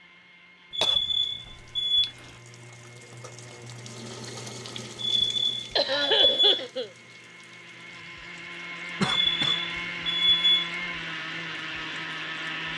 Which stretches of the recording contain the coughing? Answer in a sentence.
The coughing can be heard from 0.8 to 2.3 s, from 5.8 to 6.9 s and from 9.0 to 9.6 s.